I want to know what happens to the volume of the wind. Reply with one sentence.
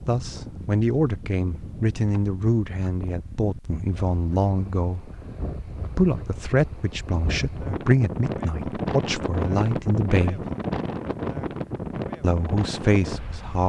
The volume of the wind goes up.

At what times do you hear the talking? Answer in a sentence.
The talking can be heard from 0.1 to 10.4 s and from 12.2 to 13.6 s.